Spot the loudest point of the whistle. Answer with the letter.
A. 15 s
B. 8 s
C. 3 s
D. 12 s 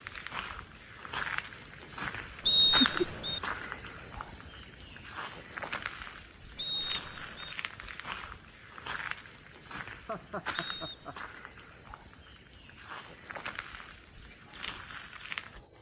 C.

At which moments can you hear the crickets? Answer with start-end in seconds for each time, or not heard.
0.0-15.7.